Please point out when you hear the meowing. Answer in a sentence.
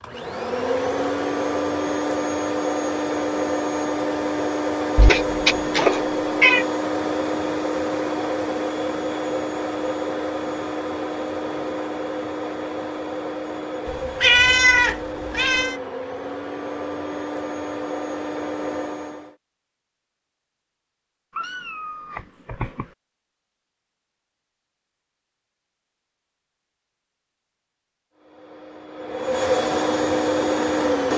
The meowing can be heard from 5.0 to 6.7 s, from 13.8 to 15.8 s and from 21.4 to 22.9 s.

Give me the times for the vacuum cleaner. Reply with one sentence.
The vacuum cleaner can be heard from 0.0 to 19.4 s and from 28.1 to 31.1 s.